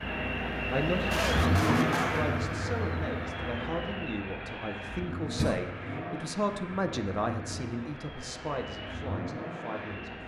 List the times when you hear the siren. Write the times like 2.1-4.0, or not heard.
not heard.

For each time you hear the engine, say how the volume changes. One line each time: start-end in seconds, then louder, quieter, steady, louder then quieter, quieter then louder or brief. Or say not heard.
0.0-10.2 quieter.